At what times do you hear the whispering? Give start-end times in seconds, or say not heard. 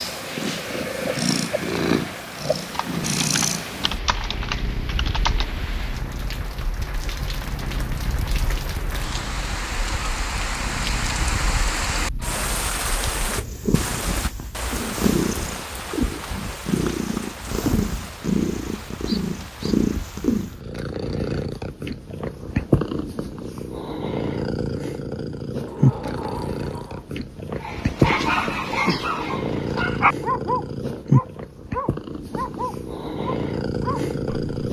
not heard.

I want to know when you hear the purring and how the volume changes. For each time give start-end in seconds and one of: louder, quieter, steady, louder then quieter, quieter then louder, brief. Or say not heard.
0.0-34.6 quieter then louder.